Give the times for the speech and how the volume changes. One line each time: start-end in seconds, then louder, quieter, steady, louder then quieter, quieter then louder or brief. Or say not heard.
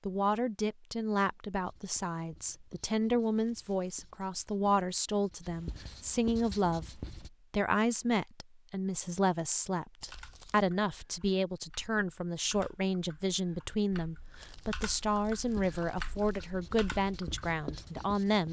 0.1-18.4 steady.